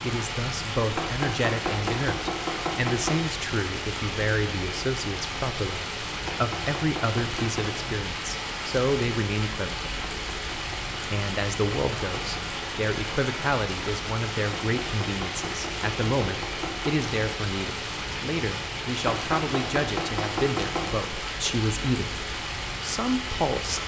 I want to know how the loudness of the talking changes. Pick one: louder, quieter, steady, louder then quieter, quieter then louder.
steady.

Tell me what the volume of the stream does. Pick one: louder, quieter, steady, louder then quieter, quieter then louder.
steady.